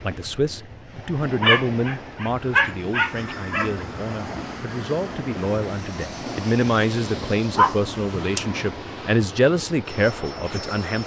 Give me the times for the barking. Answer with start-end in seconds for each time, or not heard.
1.4-3.9, 7.5-8.4.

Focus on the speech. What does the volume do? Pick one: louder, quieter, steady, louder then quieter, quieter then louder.
quieter then louder.